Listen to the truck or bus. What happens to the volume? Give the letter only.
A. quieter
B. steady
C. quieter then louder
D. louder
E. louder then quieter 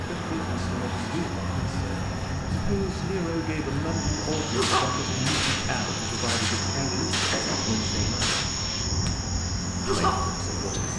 B.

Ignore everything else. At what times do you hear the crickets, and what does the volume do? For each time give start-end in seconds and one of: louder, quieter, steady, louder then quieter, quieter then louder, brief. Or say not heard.
0.0-10.9 louder.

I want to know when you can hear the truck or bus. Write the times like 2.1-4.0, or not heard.
0.0-10.9.